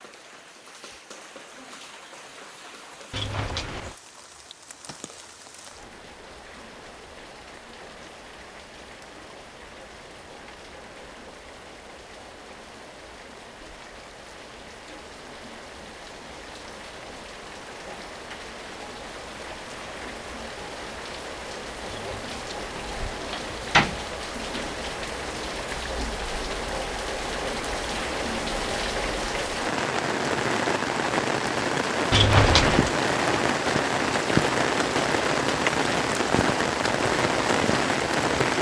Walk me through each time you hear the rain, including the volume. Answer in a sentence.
The rain can be heard from 0.0 to 38.5 s, getting louder.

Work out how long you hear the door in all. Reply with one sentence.
The door can be heard for 4 seconds in total.